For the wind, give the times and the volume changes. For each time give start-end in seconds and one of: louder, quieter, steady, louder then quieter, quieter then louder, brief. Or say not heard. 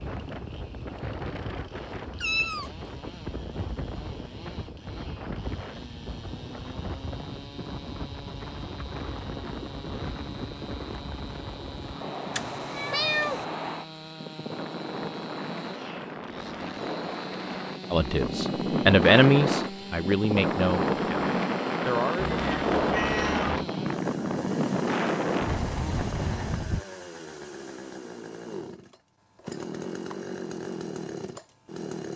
0.0-26.9 louder.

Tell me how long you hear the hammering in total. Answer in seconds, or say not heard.
not heard.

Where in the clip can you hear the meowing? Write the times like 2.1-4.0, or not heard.
2.1-2.7, 12.3-13.4, 22.1-23.7.